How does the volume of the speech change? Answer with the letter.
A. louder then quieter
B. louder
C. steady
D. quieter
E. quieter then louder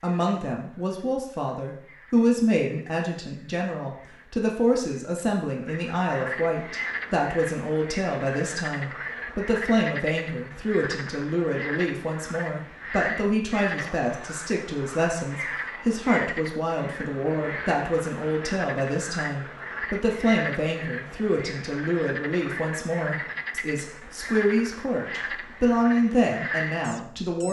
C.